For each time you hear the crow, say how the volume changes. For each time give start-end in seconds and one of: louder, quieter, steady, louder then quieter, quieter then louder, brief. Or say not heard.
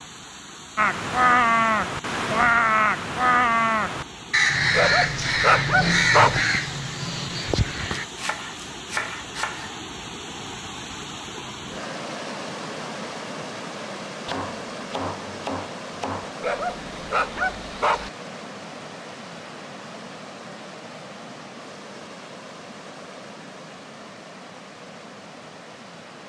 0.8-8.1 quieter.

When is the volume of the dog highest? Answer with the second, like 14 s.
6 s.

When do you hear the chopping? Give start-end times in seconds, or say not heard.
8.0-9.8, 14.2-16.4.